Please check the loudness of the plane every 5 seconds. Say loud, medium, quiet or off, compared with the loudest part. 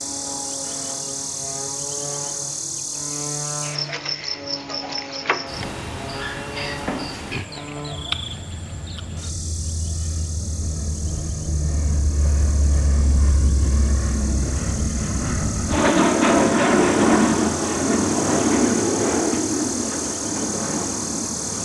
quiet, quiet, medium, loud, medium.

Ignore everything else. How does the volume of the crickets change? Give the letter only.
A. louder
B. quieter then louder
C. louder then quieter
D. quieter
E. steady
B.